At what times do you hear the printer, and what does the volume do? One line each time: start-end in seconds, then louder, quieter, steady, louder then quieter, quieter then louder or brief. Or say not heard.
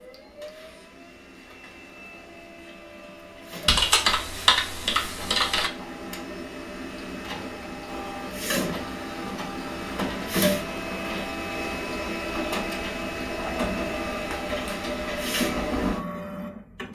0.0-16.8 louder.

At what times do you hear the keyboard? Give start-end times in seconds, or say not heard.
3.6-5.7.